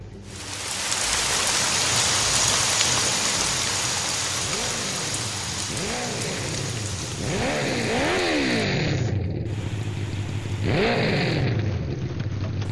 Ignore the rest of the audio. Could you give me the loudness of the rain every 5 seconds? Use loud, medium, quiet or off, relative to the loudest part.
loud, medium, quiet.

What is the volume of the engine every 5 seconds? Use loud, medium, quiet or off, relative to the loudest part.
quiet, loud, loud.